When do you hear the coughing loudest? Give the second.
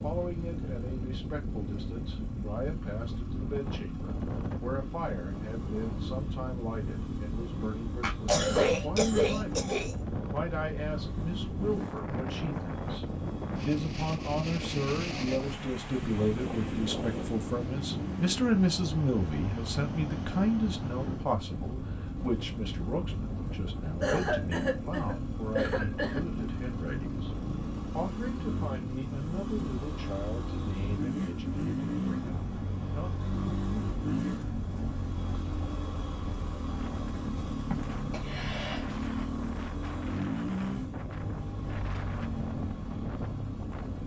8 s.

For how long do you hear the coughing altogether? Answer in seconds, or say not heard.
5 s.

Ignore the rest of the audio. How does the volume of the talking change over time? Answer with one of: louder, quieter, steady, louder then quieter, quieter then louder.
louder then quieter.